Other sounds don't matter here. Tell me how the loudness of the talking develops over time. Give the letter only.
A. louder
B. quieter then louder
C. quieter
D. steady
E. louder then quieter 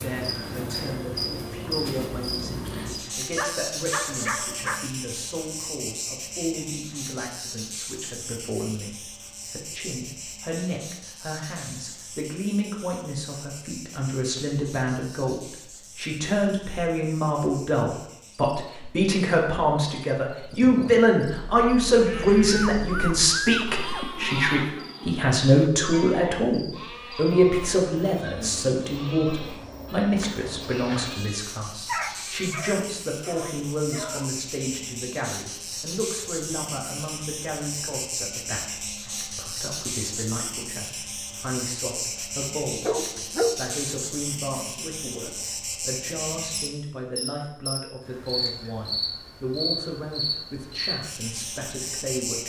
E.